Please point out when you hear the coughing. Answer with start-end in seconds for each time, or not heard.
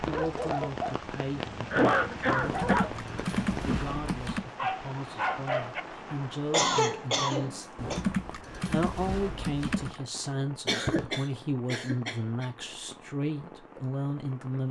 1.7-2.9, 6.5-8.0, 10.7-12.4.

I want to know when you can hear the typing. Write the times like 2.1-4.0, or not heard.
2.4-4.5, 7.8-10.0.